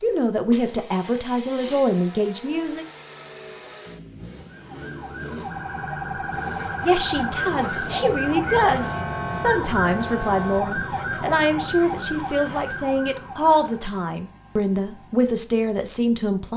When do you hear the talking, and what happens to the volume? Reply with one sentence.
You can hear the talking briefly from 0.0 to 2.9 s; and from 6.8 to 16.5 s, at a steady volume.